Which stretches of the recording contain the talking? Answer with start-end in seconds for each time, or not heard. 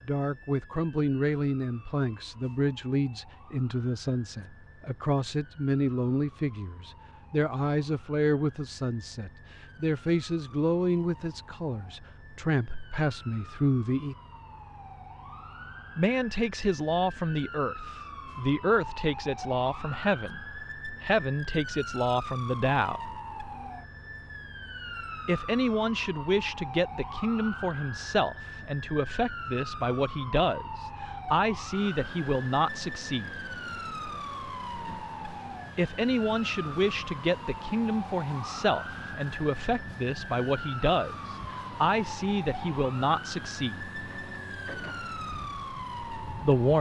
0.1-14.2, 15.9-23.1, 25.2-33.4, 35.8-43.8, 46.2-46.7.